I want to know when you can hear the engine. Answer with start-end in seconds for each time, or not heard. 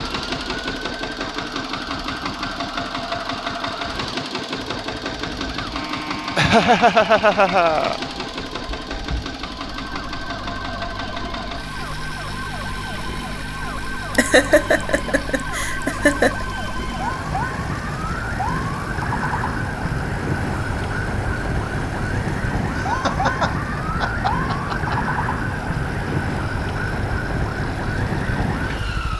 0.0-29.1.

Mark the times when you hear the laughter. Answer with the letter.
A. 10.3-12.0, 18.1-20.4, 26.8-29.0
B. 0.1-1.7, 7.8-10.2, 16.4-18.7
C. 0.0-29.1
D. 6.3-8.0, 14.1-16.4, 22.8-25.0
D.